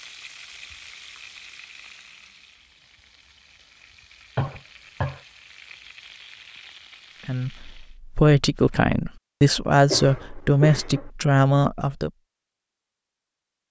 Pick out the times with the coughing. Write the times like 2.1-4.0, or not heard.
4.3-5.2, 9.8-11.1.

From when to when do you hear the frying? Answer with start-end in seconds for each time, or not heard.
0.0-8.0.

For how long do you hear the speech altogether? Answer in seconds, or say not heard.
5 s.